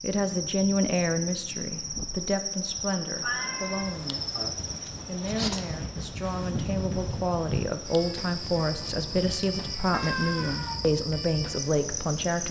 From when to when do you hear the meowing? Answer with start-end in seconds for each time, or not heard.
3.2-4.6, 9.9-10.8.